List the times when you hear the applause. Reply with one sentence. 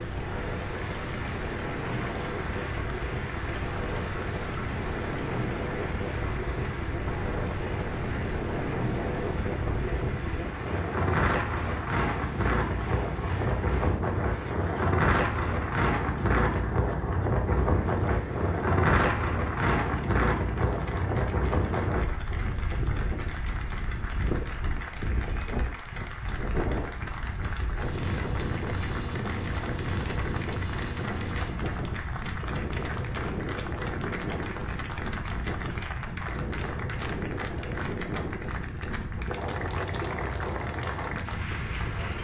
You can hear the applause from 0.0 to 42.1 s.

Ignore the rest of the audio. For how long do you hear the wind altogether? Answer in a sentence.
The wind can be heard for 42 seconds in total.